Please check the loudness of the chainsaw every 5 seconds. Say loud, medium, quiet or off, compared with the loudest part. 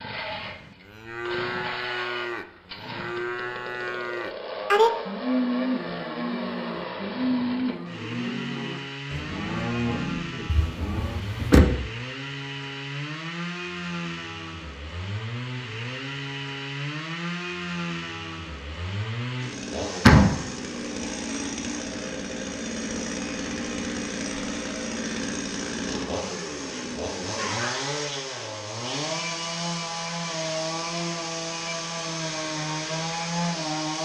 medium, medium, medium, loud, loud, loud, loud.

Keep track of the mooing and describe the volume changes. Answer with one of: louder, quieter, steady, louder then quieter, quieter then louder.
louder then quieter.